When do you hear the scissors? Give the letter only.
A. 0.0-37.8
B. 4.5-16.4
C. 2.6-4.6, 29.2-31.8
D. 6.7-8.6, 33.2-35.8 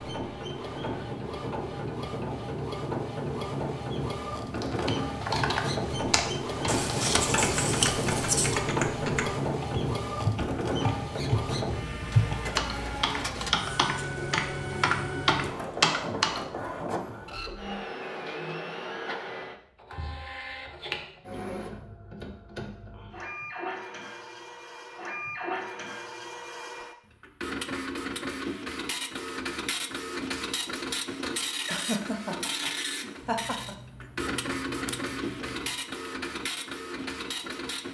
D.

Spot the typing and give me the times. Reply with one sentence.
The typing can be heard from 4.5 to 16.4 s.